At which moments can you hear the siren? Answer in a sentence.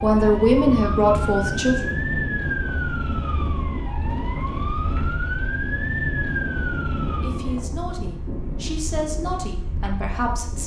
You can hear the siren from 0.0 to 7.7 s.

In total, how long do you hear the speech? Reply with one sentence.
The speech can be heard for 5 seconds in total.